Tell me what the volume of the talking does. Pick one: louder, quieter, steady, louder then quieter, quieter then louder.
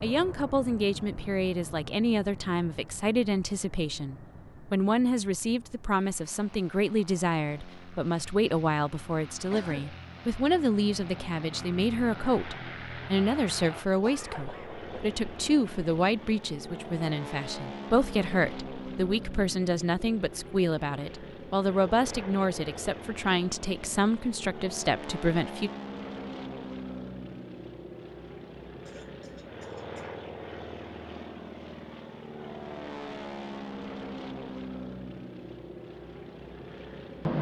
steady.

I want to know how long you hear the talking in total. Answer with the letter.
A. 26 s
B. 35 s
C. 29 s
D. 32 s
A.